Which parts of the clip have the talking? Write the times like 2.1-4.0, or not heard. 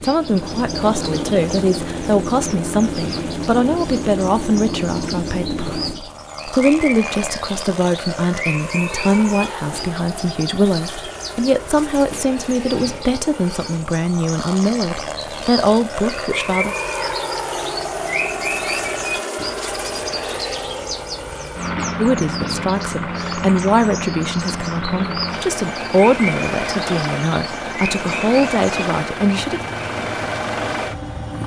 0.0-16.8, 21.9-29.6.